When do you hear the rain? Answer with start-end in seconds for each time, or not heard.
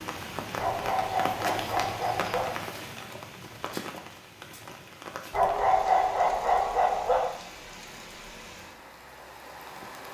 0.0-10.0.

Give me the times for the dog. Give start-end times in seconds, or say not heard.
0.6-2.5, 5.3-7.3.